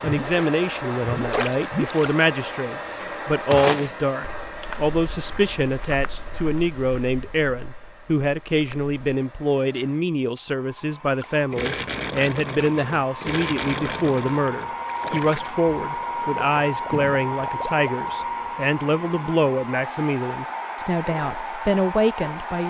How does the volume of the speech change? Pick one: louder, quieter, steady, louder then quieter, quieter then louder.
steady.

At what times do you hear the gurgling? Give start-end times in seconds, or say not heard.
0.0-2.1, 11.2-17.9.